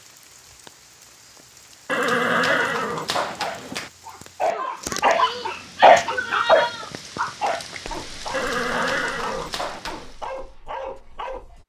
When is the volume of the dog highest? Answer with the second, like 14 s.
6 s.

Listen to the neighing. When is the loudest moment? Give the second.
2 s.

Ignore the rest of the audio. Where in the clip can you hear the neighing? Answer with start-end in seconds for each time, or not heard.
1.9-3.9, 8.3-10.2.